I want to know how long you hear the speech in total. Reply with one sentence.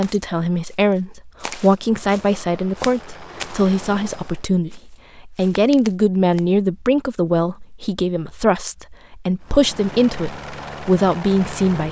The speech can be heard for 12 seconds in total.